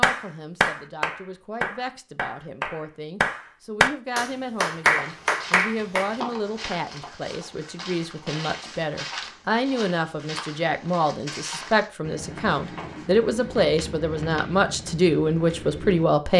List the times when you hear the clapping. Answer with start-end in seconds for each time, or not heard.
0.0-6.1.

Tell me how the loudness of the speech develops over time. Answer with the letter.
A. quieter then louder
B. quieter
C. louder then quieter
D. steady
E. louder
E.